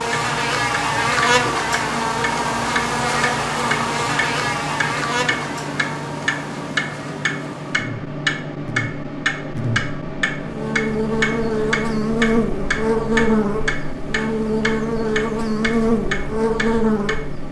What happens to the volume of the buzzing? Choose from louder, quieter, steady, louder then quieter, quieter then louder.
quieter then louder.